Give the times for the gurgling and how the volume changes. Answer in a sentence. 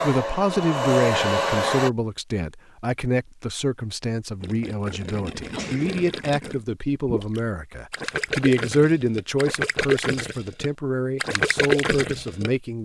You can hear the gurgling from 4.4 to 12.5 s, getting louder.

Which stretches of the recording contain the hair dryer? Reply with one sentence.
The hair dryer can be heard from 0.0 to 1.9 s.